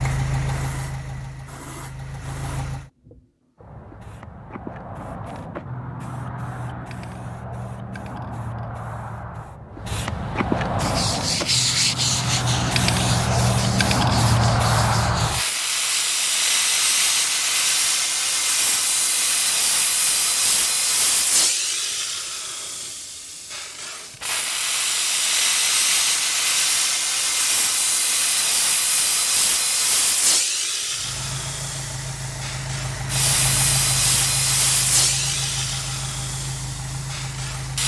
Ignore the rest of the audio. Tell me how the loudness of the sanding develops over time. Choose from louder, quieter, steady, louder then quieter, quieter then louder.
quieter.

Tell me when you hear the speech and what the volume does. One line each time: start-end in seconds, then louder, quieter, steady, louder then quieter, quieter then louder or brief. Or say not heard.
not heard.